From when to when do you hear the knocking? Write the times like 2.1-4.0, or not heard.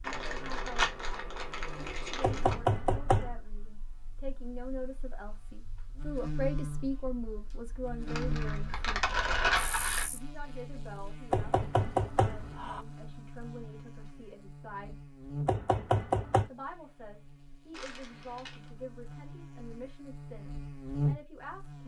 2.2-3.4, 11.3-12.8, 15.4-16.4.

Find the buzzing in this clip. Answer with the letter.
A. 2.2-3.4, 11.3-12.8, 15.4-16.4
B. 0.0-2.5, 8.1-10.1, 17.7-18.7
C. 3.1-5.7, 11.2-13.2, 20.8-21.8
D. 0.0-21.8
D.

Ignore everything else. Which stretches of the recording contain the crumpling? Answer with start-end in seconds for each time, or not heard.
0.0-2.5, 8.1-10.1, 17.7-18.7.